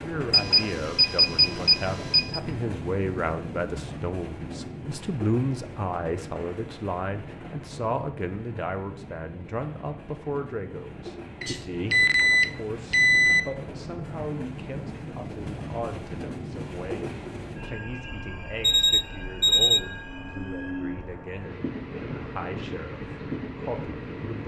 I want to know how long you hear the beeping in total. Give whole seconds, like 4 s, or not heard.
5 s.